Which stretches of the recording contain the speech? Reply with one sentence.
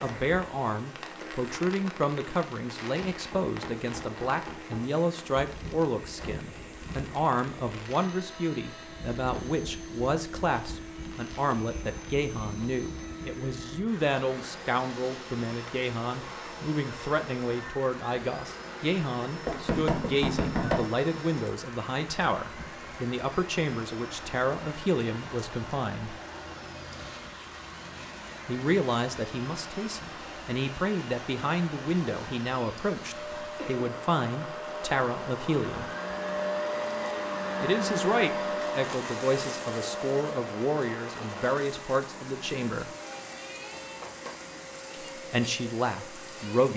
The speech can be heard from 0.0 to 26.1 s, from 28.4 to 35.9 s, from 37.6 to 42.9 s and from 45.3 to 46.7 s.